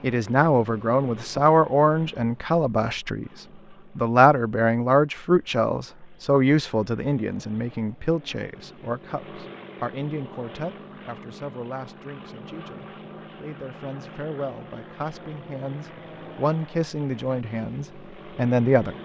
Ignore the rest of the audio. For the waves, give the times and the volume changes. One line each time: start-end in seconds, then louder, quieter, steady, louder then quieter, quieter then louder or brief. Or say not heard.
not heard.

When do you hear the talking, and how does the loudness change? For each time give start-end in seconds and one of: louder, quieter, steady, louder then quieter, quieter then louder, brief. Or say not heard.
0.0-18.9 quieter then louder.